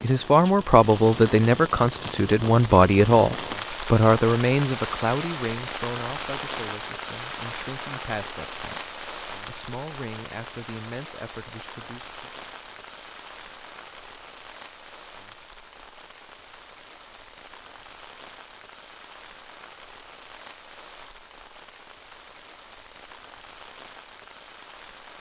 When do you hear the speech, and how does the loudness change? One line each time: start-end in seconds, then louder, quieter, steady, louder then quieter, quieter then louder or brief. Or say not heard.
0.0-12.3 quieter.